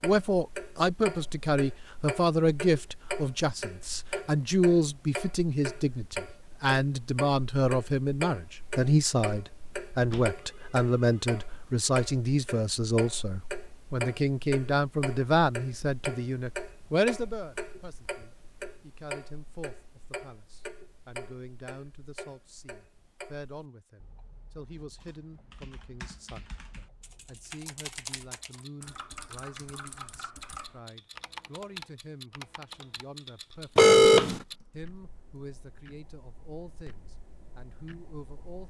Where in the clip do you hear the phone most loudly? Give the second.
34 s.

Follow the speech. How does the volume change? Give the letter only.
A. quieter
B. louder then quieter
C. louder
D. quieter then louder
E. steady
A.